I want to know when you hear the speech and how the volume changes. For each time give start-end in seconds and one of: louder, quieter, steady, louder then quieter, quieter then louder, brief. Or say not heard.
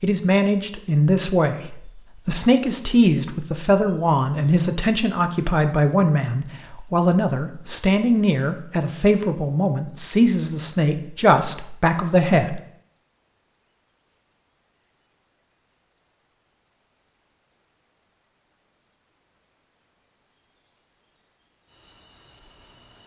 0.0-12.6 steady.